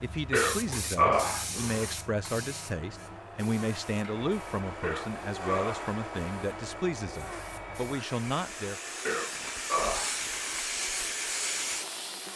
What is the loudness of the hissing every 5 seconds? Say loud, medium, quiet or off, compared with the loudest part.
medium, medium, loud.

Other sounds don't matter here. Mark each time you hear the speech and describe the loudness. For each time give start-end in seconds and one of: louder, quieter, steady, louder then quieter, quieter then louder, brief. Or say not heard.
0.0-8.8 steady.